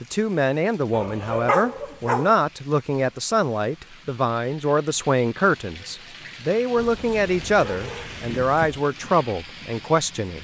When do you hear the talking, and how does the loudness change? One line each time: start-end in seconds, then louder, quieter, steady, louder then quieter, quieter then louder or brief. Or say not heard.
0.0-10.4 steady.